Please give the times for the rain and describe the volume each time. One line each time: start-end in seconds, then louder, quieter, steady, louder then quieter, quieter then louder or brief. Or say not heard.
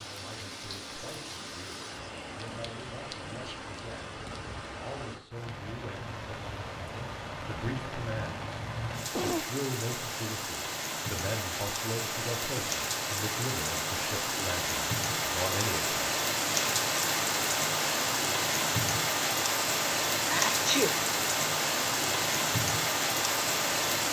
0.0-24.0 louder.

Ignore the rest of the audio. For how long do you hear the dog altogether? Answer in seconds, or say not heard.
not heard.